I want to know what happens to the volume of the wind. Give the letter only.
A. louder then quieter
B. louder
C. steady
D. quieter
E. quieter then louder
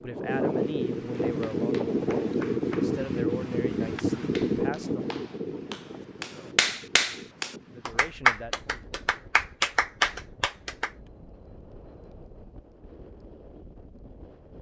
D.